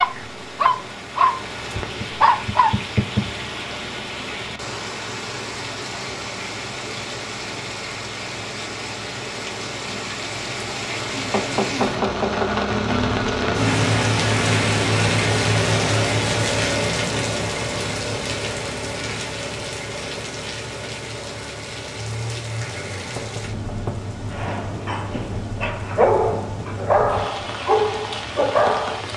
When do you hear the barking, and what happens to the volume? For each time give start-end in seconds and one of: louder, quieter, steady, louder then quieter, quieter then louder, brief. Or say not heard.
0.0-2.8 brief
24.3-29.0 louder.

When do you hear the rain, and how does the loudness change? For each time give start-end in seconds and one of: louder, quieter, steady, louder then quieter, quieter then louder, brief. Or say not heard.
0.0-29.1 louder then quieter.